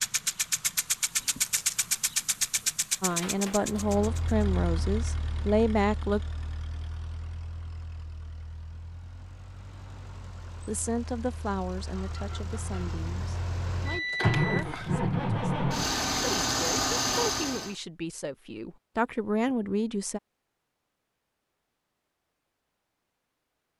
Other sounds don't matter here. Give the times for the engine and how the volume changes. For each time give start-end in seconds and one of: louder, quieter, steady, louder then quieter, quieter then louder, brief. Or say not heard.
0.0-17.8 quieter then louder.